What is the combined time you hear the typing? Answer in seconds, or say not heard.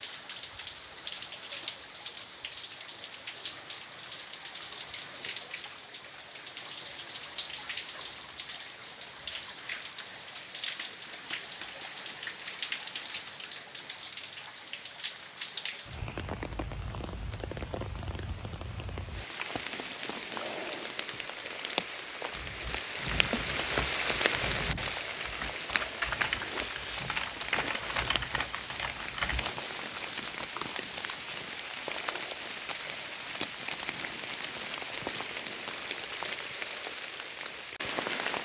7 s.